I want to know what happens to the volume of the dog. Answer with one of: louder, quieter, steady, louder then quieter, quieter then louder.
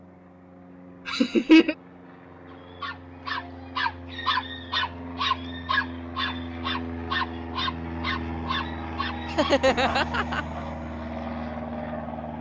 quieter.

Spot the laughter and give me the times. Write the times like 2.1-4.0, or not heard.
1.1-1.8, 9.3-10.4.